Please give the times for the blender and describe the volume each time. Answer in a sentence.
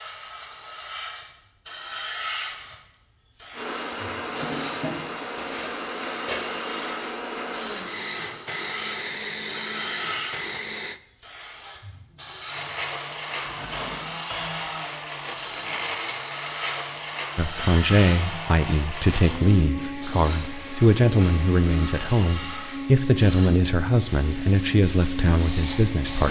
You can hear the blender from 3.5 to 11.0 s, at a steady volume; and from 12.4 to 26.2 s, at a steady volume.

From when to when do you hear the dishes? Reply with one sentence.
You can hear the dishes from 4.3 to 6.5 s and from 13.4 to 14.7 s.